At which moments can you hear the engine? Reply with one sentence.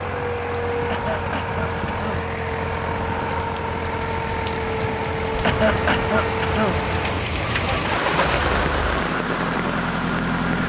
You can hear the engine from 0.0 to 10.6 s.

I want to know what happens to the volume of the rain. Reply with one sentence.
The loudness of the rain goes up.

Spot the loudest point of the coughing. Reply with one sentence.
The loudest moment of the coughing is at 6 seconds.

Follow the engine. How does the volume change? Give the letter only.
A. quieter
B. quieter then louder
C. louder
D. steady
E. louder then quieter
D.